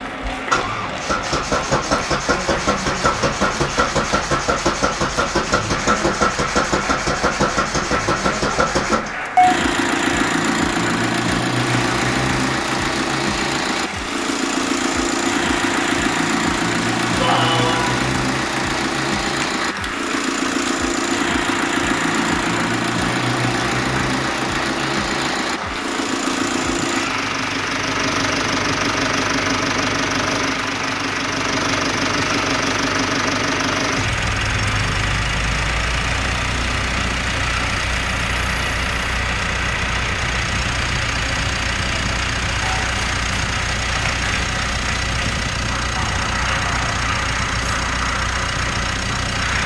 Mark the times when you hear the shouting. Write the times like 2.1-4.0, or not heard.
17.1-18.1.